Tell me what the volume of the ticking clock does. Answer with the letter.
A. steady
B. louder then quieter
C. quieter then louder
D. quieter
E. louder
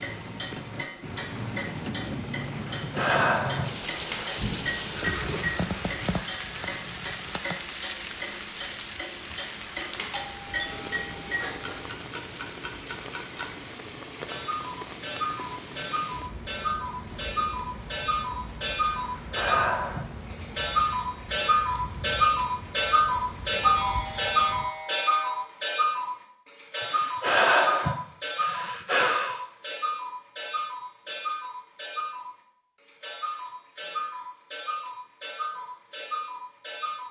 B.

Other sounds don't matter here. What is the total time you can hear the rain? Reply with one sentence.
You can hear the rain for 25 seconds altogether.